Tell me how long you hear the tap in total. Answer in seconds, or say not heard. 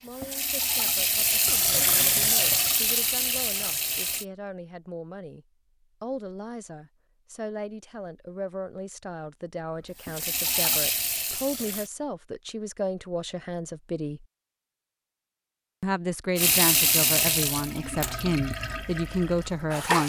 10 s.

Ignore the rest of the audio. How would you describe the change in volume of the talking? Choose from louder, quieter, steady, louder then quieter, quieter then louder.
louder.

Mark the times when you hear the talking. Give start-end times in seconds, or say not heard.
0.0-14.2, 15.8-20.0.